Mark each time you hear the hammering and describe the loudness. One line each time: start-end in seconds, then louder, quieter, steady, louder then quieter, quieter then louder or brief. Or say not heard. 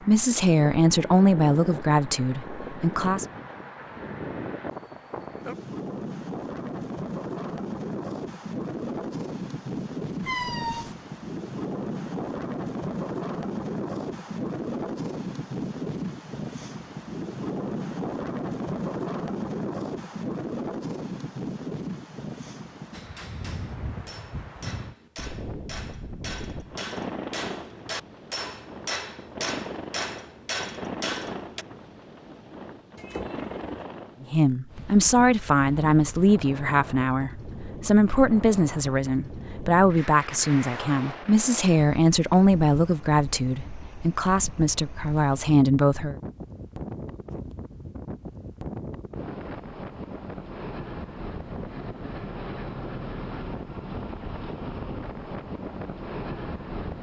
22.9-31.6 louder.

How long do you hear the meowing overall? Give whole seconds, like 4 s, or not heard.
2 s.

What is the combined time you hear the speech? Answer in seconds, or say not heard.
15 s.